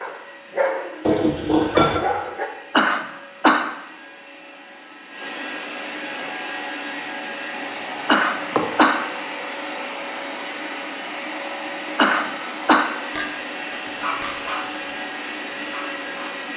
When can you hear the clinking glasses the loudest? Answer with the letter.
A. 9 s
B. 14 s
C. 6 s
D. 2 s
D.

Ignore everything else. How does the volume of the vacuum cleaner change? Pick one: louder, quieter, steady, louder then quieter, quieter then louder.
louder.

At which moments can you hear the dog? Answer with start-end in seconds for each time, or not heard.
0.0-2.5, 13.8-16.4.